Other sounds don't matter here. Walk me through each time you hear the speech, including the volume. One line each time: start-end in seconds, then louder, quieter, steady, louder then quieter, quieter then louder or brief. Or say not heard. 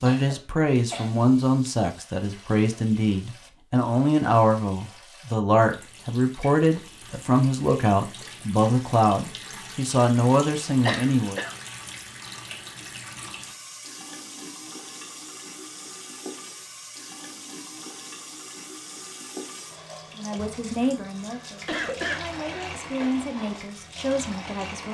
0.0-11.4 steady
20.1-24.8 quieter then louder.